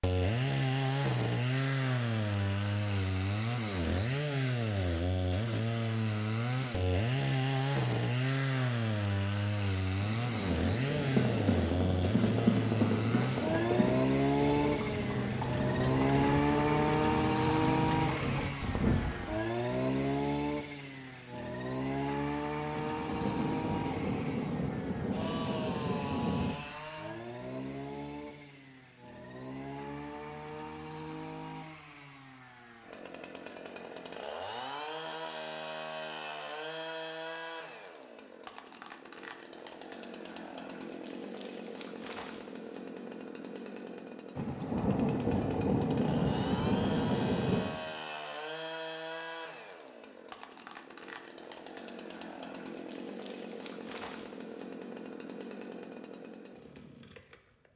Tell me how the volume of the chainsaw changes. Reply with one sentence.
The volume of the chainsaw goes down.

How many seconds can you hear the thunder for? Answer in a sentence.
The thunder can be heard for 11 seconds in total.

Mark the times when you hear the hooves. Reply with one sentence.
The hooves can be heard from 10.9 to 19.4 s.